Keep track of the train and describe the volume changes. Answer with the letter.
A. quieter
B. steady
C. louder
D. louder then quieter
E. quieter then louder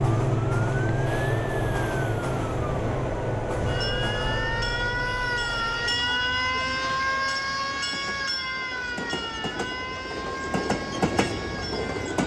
E.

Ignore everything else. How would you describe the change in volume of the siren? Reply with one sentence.
The volume of the siren goes up, then down.